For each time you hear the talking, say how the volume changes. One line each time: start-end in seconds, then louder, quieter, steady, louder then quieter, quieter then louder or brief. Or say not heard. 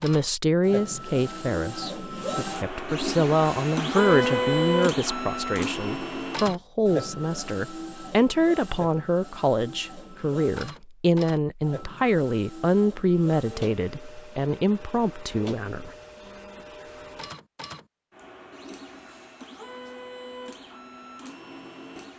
0.0-15.9 steady.